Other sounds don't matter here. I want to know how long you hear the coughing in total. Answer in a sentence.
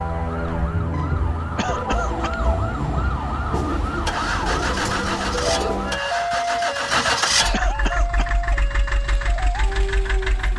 You can hear the coughing for 2 seconds altogether.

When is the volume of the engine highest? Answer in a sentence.
The loudest moment of the engine is at 7 seconds.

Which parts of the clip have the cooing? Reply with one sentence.
The cooing can be heard from 3.5 to 6.0 s.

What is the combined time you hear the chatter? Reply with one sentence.
The chatter can't be heard in this clip.